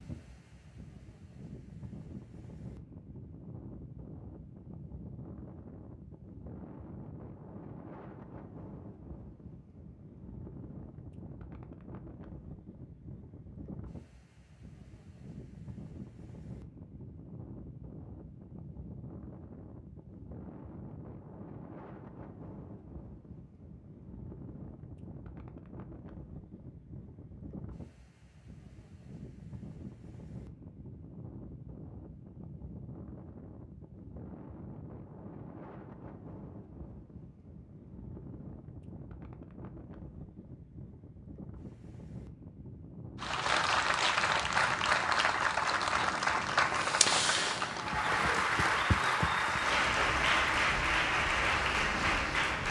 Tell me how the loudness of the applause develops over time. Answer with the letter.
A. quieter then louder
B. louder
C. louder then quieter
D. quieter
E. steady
E.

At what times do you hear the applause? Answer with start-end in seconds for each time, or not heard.
43.2-52.6.